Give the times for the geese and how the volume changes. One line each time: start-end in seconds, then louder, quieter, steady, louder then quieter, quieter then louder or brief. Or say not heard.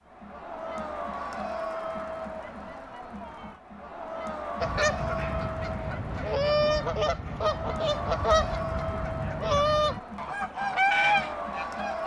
4.6-12.0 louder.